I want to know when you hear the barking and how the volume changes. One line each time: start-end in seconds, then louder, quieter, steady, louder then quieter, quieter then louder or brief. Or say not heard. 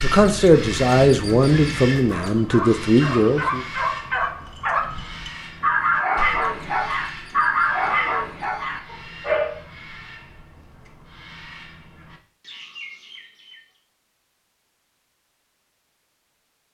0.1-9.6 louder.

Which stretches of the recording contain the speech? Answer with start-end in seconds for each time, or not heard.
0.0-3.6.